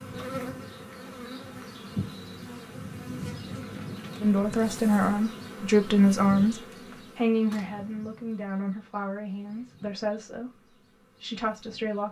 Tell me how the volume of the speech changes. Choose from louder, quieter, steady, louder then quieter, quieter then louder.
quieter.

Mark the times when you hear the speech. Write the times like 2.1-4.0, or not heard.
4.2-12.0.